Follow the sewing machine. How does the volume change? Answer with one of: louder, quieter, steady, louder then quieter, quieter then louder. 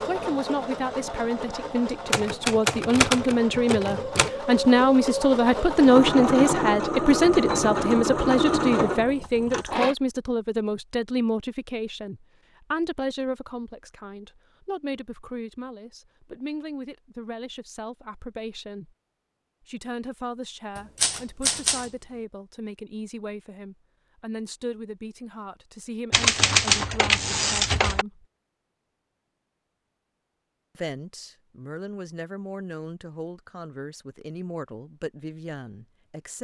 louder.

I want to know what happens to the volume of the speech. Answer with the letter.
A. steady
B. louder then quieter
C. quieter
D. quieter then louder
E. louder
C.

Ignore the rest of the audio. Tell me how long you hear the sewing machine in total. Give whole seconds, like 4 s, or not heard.
10 s.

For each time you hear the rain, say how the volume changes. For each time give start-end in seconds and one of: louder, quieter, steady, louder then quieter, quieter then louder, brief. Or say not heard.
not heard.